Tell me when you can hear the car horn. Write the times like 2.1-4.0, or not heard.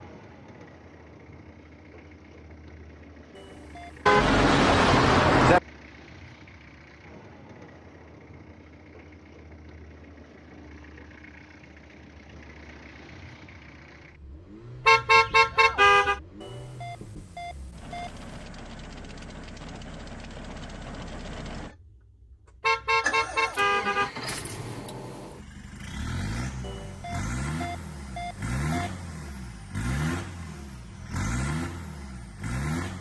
4.0-5.6, 14.8-16.2, 22.6-24.1.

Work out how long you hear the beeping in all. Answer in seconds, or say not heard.
5 s.